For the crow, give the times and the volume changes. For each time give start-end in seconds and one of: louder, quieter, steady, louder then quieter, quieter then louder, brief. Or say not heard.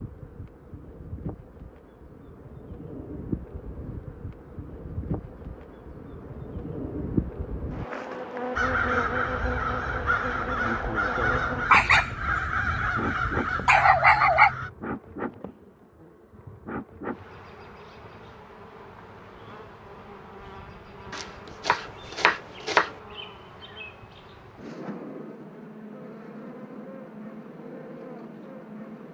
8.6-14.7 steady.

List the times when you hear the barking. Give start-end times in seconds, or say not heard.
11.7-14.5.